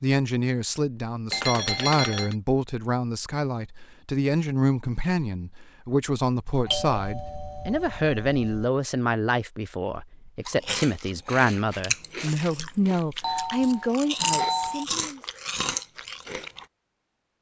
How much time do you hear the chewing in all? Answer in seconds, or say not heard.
6 s.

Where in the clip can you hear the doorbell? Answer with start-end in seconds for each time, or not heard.
1.3-2.4, 6.7-8.7, 13.2-14.8.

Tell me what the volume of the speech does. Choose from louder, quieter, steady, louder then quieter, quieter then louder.
steady.